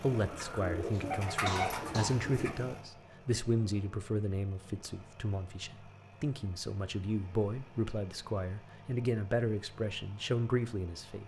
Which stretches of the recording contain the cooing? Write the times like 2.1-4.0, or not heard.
0.1-2.6.